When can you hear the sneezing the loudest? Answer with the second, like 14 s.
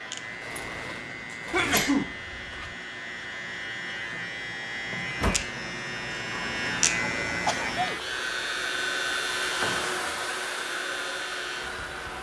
2 s.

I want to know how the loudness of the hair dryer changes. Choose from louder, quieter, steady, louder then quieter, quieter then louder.
louder.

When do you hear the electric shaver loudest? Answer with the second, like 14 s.
7 s.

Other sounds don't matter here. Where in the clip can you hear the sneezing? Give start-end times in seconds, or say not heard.
1.5-2.8, 7.5-8.0.